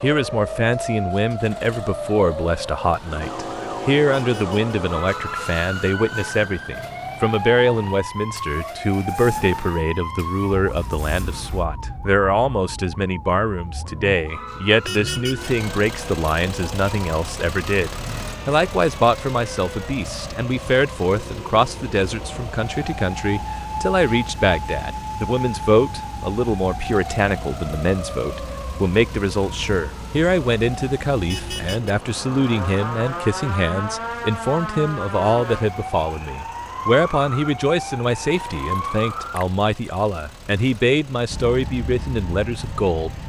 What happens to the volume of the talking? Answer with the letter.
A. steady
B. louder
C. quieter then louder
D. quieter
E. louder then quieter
A.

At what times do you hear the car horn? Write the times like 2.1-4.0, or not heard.
4.2-4.6, 14.8-15.5, 31.2-31.9.